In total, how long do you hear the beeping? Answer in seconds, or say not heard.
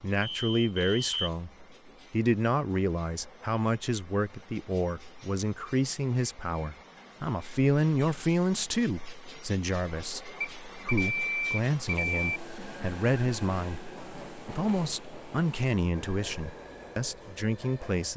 3 s.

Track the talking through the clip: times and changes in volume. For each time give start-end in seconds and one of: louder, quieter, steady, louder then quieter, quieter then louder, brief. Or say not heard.
0.0-18.1 steady.